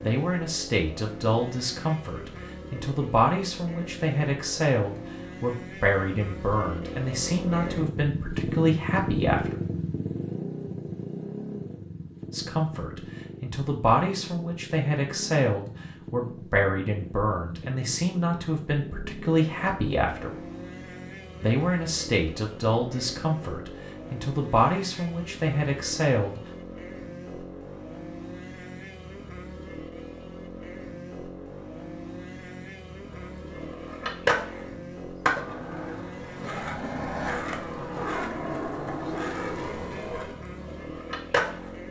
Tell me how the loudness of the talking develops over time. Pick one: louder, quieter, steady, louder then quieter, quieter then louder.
steady.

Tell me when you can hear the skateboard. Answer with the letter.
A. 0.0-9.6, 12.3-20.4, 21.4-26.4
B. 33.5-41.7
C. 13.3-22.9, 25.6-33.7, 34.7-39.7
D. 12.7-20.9
B.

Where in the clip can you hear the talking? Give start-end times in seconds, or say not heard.
0.0-9.6, 12.3-20.4, 21.4-26.4.